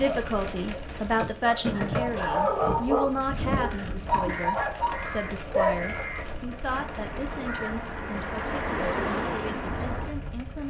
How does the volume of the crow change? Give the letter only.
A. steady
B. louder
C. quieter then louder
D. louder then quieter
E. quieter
B.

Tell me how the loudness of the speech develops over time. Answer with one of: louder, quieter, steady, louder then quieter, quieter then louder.
quieter.